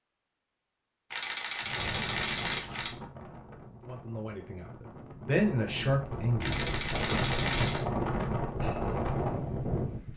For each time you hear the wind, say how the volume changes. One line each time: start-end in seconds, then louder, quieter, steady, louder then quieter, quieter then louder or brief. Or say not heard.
1.6-10.1 quieter then louder.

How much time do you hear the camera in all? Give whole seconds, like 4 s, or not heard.
3 s.